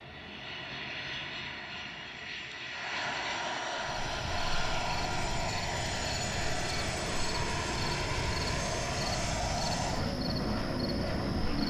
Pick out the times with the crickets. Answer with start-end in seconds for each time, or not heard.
3.8-11.6.